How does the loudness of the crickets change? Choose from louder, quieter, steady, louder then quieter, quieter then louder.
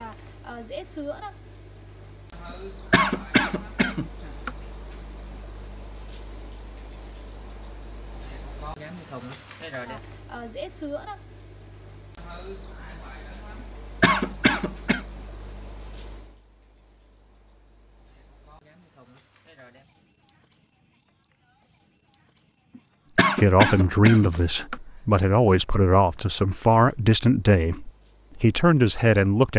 quieter.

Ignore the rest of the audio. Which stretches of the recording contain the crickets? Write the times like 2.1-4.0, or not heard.
0.0-29.5.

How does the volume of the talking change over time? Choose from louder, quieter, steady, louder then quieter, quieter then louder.
steady.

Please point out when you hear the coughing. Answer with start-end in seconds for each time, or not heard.
2.9-4.5, 14.0-15.0, 23.1-24.8.